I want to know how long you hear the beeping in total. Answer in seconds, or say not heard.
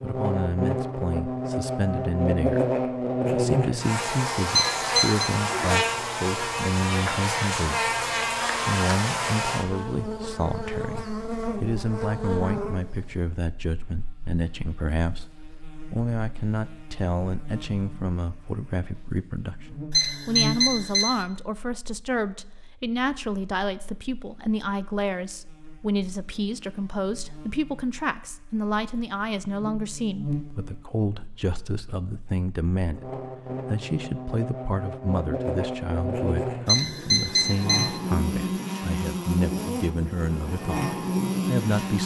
3 s.